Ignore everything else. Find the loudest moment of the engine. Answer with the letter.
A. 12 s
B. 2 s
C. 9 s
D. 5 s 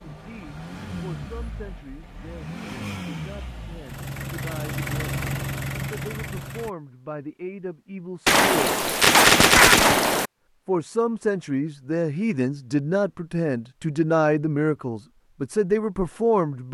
D.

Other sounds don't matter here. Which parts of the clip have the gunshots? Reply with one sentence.
The gunshots can be heard from 8.2 to 10.3 s.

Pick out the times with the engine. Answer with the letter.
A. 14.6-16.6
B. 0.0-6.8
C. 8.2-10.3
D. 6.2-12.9
B.